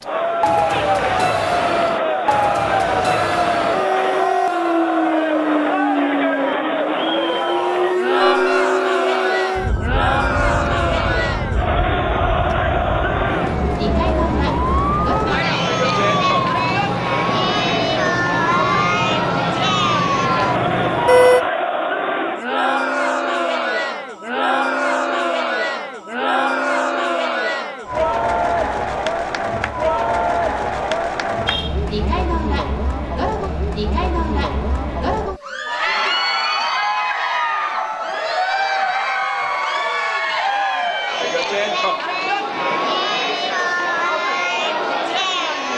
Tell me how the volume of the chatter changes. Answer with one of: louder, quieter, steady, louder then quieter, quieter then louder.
steady.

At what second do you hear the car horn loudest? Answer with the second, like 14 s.
21 s.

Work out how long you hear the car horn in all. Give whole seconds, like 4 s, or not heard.
2 s.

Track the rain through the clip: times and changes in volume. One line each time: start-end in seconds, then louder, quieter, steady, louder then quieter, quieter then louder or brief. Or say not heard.
not heard.